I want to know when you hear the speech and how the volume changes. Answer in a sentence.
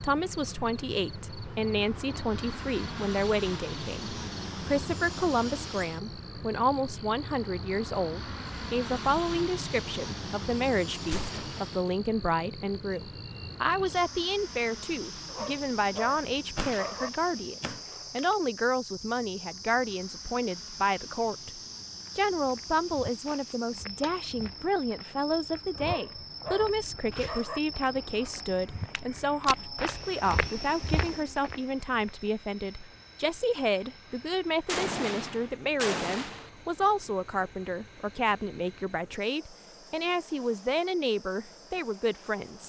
The speech can be heard from 0.0 to 42.6 s, at a steady volume.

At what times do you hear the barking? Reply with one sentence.
You can hear the barking from 15.2 to 17.1 s and from 25.8 to 27.6 s.